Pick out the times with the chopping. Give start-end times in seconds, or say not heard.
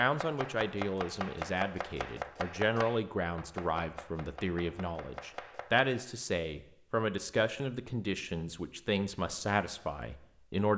0.0-5.9.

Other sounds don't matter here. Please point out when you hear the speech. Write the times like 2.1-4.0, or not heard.
0.0-10.7.